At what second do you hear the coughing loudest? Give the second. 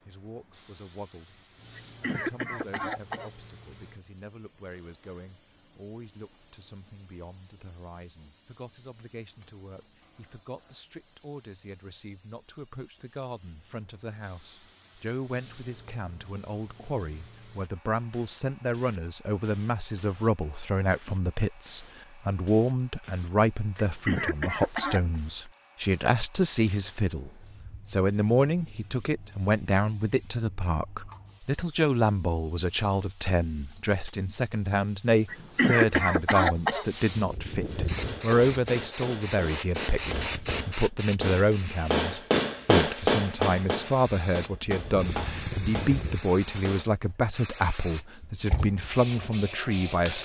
36 s.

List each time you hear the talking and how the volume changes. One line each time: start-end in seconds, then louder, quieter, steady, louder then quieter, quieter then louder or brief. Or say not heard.
0.1-50.1 louder.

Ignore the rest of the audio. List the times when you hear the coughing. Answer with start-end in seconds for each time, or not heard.
1.8-3.3, 23.8-25.0, 35.3-36.9.